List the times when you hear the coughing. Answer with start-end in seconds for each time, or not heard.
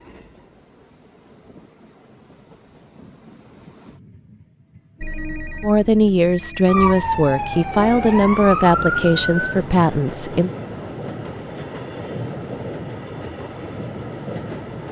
not heard.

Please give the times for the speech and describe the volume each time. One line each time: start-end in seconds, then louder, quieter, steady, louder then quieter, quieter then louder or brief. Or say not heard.
5.6-10.5 steady.